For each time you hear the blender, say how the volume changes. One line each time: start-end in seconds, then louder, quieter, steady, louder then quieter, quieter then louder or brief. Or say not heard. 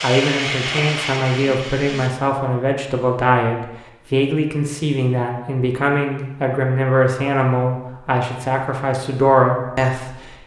not heard.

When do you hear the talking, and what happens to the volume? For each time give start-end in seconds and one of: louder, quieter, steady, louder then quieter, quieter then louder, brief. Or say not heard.
0.0-10.4 steady.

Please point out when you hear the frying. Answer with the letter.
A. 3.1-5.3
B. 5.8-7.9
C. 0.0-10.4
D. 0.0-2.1
D.